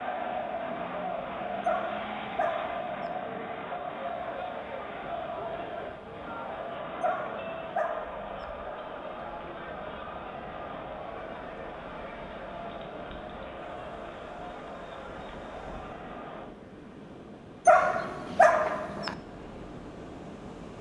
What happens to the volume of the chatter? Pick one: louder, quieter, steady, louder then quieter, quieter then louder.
quieter.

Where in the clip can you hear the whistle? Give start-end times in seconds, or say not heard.
not heard.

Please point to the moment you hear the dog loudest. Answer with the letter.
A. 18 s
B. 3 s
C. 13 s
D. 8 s
A.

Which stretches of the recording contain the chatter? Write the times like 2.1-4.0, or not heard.
0.0-16.5.